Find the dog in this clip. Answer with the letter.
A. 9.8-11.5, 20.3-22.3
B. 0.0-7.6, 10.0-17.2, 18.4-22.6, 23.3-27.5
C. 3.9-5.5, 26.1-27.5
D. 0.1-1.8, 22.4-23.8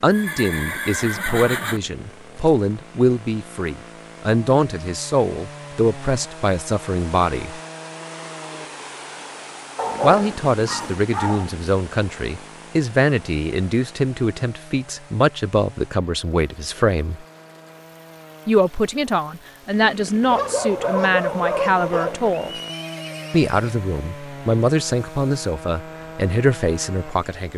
A.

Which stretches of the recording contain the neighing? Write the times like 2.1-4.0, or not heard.
0.1-1.8, 22.4-23.8.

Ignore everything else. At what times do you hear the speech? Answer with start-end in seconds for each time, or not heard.
0.0-7.6, 10.0-17.2, 18.4-22.6, 23.3-27.5.